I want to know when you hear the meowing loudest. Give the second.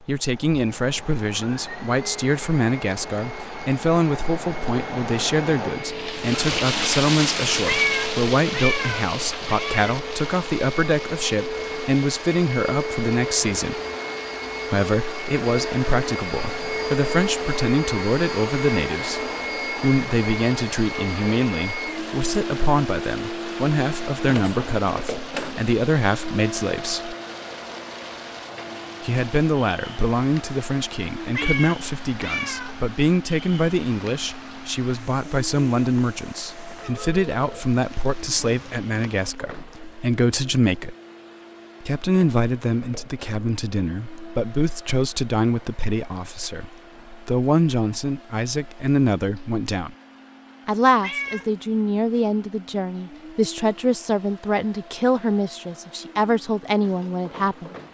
8 s.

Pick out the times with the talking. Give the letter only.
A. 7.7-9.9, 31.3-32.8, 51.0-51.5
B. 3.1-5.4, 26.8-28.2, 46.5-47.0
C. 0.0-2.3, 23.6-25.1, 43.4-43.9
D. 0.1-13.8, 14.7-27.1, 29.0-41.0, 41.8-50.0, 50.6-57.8
D.